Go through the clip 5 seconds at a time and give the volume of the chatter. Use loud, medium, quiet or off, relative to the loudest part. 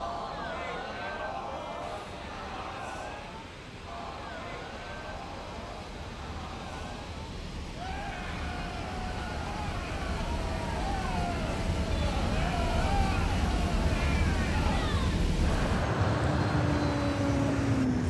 loud, medium, loud, loud.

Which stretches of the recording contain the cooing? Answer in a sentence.
You can't hear the cooing here.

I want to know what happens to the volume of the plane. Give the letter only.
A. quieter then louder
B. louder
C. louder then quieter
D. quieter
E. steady
B.